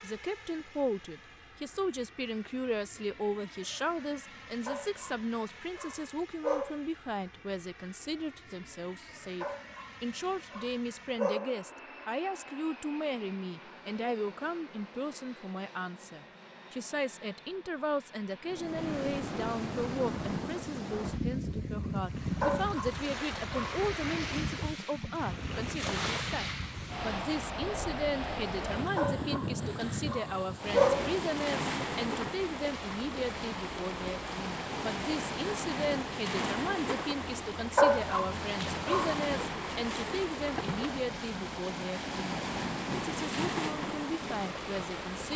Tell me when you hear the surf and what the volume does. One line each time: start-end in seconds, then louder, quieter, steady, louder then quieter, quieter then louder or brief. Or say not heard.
18.4-45.3 steady.